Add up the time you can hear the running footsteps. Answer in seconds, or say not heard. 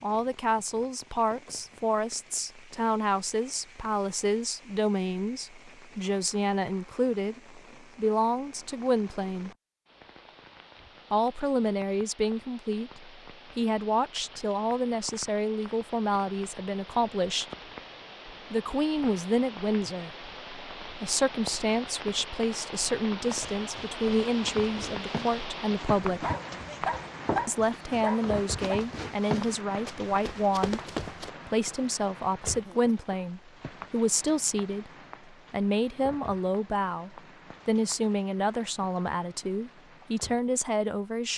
8 s.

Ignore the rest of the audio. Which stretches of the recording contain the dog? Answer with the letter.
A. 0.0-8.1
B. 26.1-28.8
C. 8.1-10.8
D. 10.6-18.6
B.